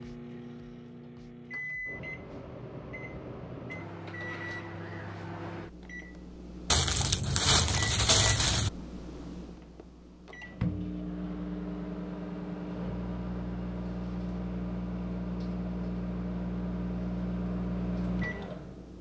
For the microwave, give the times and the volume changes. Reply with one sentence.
The microwave can be heard from 0.0 to 18.9 s, getting louder.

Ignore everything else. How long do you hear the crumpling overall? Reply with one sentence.
The crumpling can be heard for 2 seconds in total.